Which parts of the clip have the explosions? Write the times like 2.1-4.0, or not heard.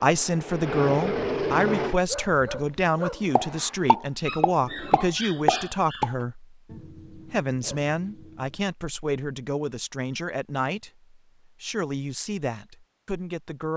3.4-6.1.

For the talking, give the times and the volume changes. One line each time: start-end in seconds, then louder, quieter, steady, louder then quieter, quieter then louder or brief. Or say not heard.
0.0-13.7 quieter.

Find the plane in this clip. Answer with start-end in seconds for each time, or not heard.
0.0-2.0.